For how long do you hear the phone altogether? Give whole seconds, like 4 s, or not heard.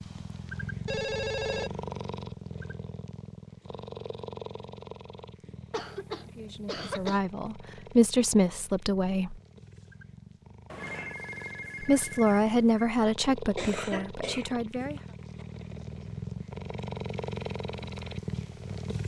3 s.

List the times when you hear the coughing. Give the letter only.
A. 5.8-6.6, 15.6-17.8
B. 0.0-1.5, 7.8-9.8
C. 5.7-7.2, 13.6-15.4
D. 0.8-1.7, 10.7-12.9
C.